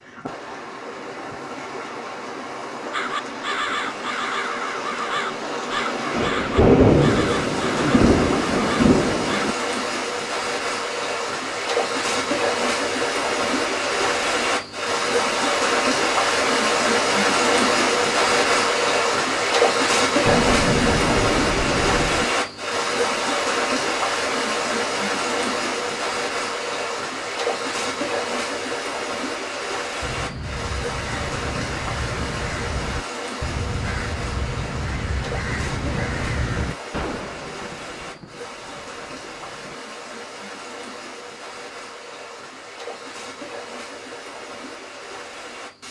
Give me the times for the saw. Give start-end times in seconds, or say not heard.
not heard.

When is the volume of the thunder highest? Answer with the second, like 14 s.
7 s.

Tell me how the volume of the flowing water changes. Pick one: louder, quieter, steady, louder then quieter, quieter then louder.
louder then quieter.